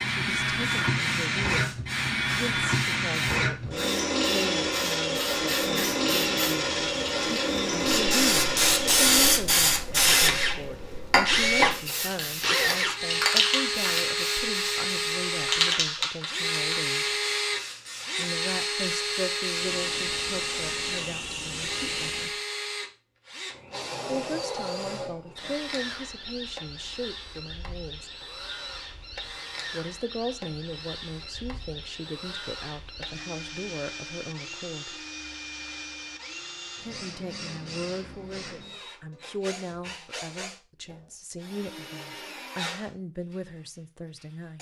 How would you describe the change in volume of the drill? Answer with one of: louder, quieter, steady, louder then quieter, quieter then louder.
quieter.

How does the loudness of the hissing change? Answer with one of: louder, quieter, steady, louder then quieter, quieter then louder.
louder then quieter.